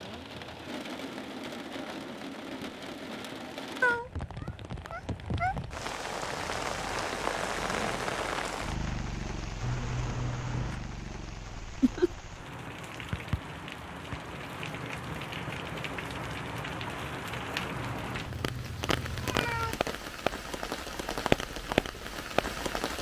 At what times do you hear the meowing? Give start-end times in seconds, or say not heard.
3.8-5.5, 9.6-10.8, 17.7-19.8.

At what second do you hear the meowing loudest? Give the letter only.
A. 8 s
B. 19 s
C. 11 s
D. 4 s
D.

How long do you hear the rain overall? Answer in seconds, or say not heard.
23 s.